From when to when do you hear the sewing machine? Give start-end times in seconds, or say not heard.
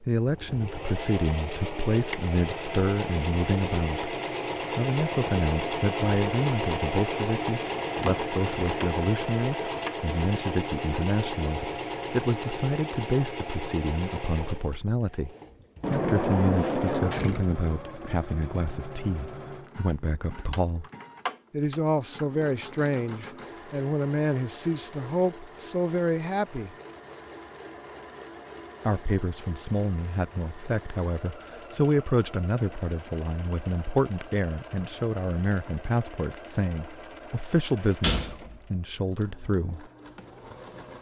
0.2-40.9.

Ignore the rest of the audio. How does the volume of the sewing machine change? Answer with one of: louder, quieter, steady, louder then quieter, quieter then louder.
quieter.